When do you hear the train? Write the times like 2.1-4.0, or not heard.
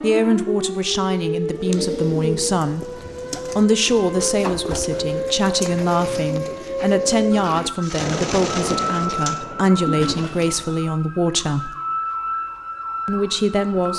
8.0-10.2.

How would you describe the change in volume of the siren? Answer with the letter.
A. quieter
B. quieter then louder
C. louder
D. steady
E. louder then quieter
D.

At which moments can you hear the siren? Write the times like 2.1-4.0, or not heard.
0.0-13.9.